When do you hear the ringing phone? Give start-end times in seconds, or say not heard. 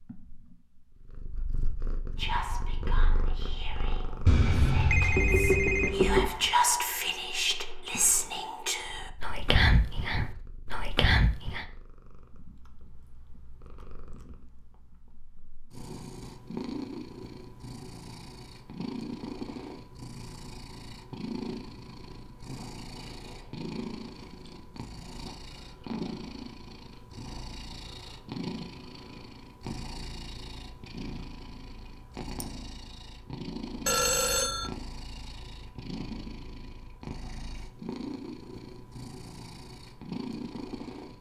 4.2-6.3, 33.9-34.7.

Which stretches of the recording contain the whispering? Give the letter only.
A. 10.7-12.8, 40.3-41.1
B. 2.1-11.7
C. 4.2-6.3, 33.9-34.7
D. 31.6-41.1
B.